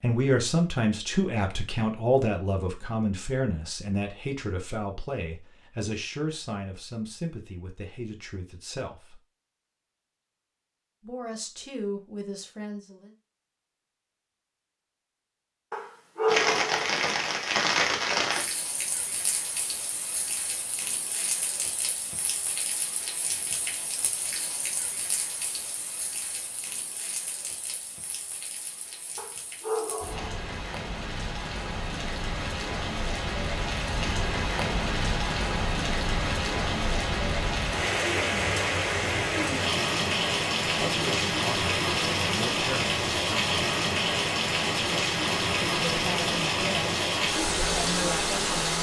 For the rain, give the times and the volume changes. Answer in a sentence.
You can hear the rain from 16.2 to 48.7 s, getting quieter then louder.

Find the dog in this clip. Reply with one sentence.
You can hear the dog from 15.7 to 17.0 s and from 29.1 to 30.4 s.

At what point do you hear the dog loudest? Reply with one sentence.
The volume of the dog peaks at 16 seconds.